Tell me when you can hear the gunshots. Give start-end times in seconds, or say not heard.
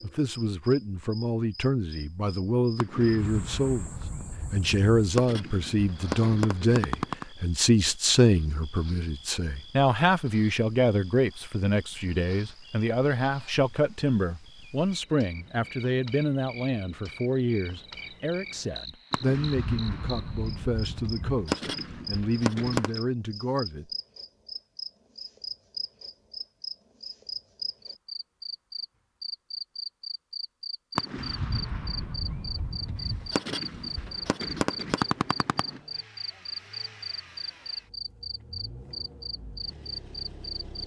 2.8-7.2, 19.1-23.0, 30.9-35.8.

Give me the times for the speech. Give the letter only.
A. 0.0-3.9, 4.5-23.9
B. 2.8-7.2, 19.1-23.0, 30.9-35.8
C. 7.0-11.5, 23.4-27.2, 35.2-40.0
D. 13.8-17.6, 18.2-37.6
A.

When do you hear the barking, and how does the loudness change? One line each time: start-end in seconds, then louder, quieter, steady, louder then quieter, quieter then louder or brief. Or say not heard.
not heard.